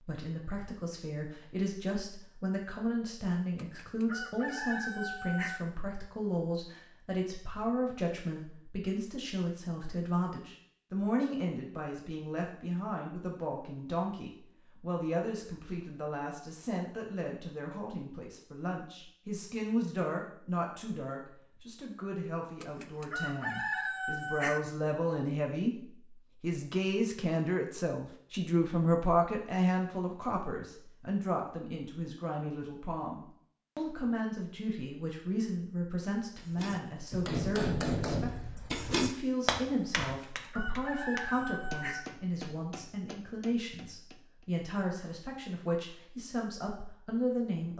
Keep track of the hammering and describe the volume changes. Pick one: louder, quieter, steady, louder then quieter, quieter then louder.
quieter.